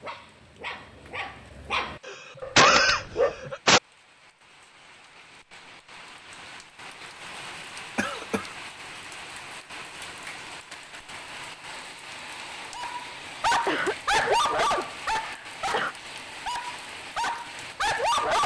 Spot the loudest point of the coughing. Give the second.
3 s.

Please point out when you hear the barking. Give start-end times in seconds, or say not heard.
0.0-3.4, 12.8-18.4.